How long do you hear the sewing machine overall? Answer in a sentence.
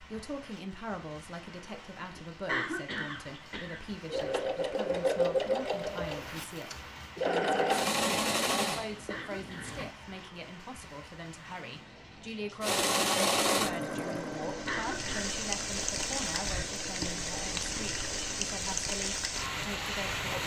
The sewing machine can be heard for 12 seconds in total.